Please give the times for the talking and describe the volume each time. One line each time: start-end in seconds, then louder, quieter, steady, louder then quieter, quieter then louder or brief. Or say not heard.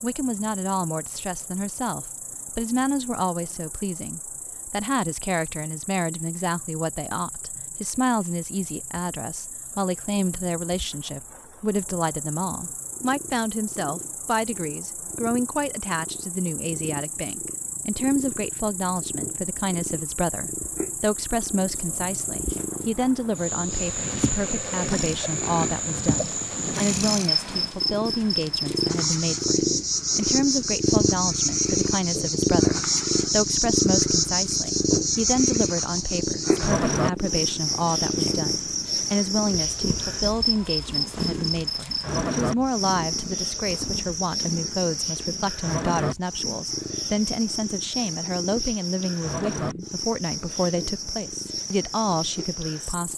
0.0-53.1 steady.